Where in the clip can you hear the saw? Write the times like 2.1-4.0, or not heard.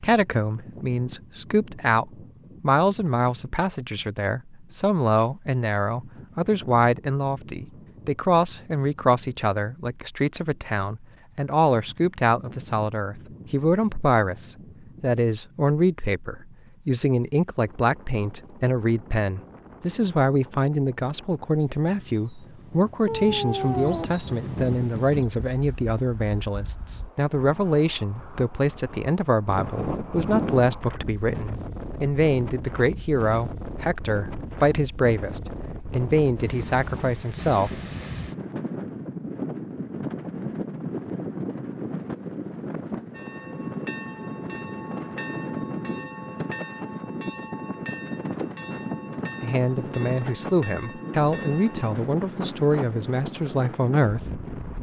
not heard.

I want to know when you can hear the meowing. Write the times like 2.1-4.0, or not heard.
23.1-24.1.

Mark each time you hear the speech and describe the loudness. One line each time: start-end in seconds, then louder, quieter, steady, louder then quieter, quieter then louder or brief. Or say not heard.
0.0-37.8 steady
49.4-54.4 steady.